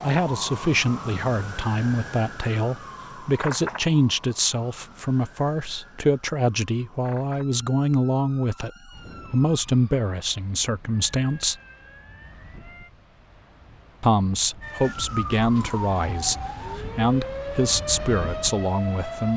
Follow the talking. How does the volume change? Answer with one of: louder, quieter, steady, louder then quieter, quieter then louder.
steady.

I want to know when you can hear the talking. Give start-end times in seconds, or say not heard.
0.0-11.6, 14.0-19.3.